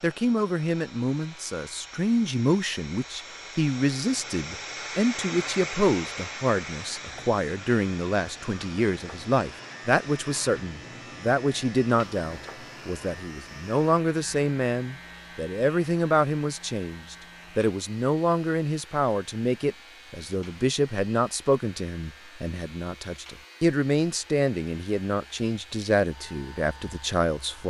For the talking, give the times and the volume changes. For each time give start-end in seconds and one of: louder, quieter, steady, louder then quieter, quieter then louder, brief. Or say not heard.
0.0-27.6 steady.